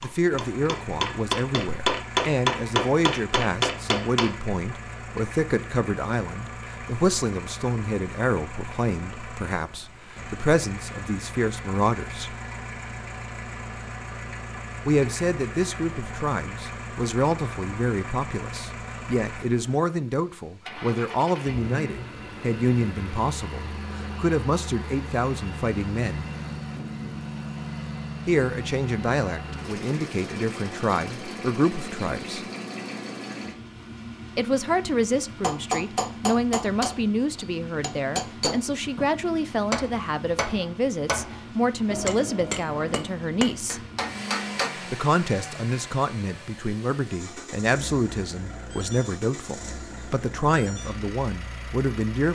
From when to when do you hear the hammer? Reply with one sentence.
The hammer can be heard from 0.0 to 4.3 s, from 35.4 to 39.1 s and from 39.7 to 44.7 s.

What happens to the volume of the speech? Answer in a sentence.
The loudness of the speech stays about the same.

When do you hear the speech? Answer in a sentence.
You can hear the speech from 0.0 to 12.3 s, from 14.8 to 26.2 s, from 28.2 to 32.5 s, from 34.4 to 43.8 s and from 44.9 to 52.3 s.